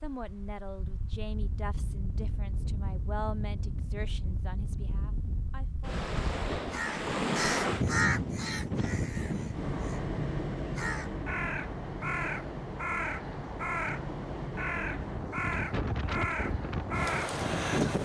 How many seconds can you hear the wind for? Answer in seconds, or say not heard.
18 s.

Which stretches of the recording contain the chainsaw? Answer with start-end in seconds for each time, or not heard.
not heard.